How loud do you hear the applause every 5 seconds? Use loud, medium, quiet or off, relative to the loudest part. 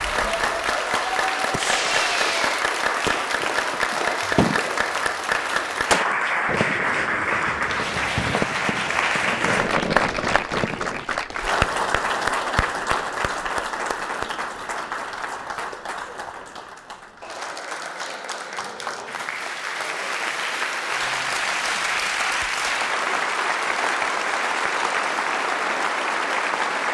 loud, loud, loud, medium, loud, loud.